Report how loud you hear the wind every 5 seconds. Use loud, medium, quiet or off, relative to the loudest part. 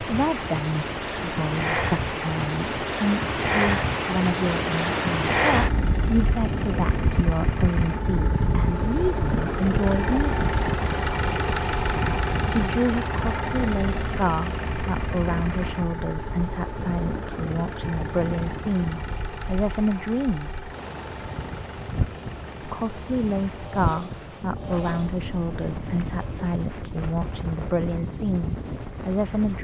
loud, loud, medium, medium, medium, medium.